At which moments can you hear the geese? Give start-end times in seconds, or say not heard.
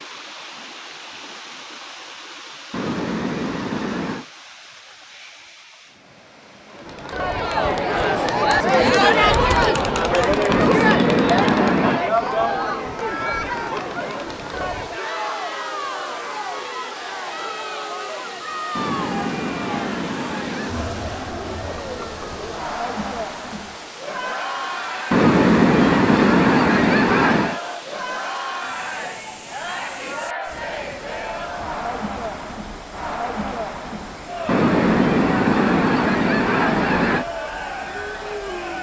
2.7-4.2, 10.4-12.1, 18.8-20.9, 25.1-27.6, 34.5-37.2.